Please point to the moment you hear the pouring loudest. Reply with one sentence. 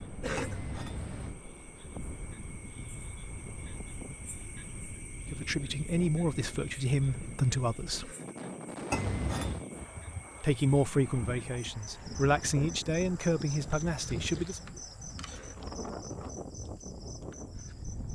The loudest moment of the pouring is at 9 seconds.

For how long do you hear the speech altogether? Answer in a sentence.
The speech can be heard for 7 seconds in total.